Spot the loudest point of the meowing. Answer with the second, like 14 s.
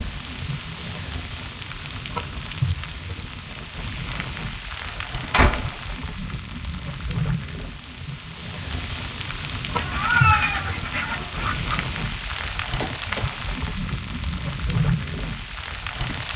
10 s.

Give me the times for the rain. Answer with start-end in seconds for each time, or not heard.
0.0-16.3.